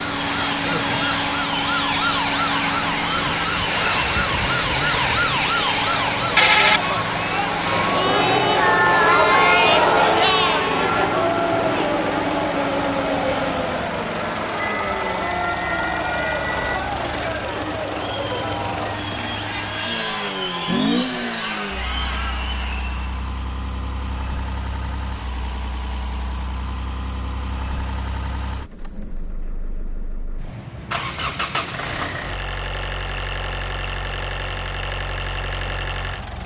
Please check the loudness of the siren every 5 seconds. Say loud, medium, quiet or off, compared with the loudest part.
loud, loud, medium, medium, off, off, off, off.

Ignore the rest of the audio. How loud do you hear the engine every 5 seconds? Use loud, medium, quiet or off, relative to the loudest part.
loud, loud, loud, loud, loud, medium, loud, loud.